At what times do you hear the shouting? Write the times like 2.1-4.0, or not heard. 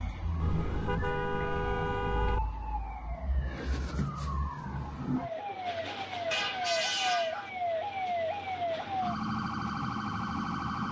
not heard.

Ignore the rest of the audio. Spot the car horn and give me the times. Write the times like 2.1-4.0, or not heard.
0.4-2.4, 6.3-7.5.